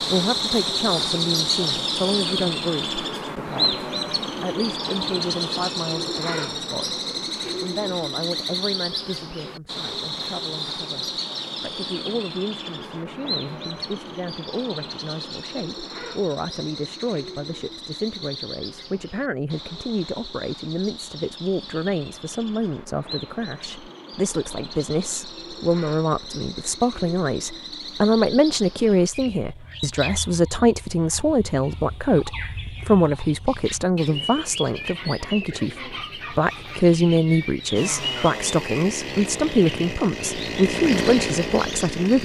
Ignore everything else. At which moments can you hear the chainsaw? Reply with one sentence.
You can hear the chainsaw from 37.7 to 42.1 s.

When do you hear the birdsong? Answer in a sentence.
The birdsong can be heard from 0.0 to 42.1 s.